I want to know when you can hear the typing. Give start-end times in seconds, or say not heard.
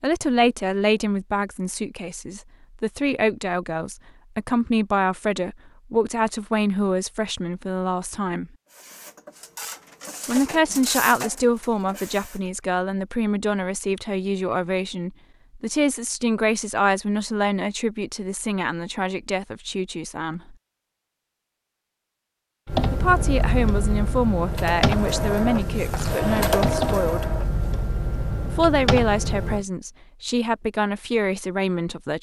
22.6-29.6.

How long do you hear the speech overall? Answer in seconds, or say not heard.
27 s.